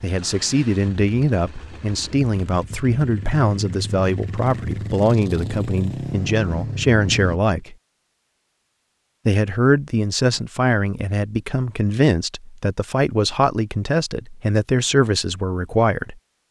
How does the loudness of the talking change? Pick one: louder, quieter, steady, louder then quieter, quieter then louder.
steady.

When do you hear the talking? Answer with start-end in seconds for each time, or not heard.
0.0-7.8, 9.2-16.1.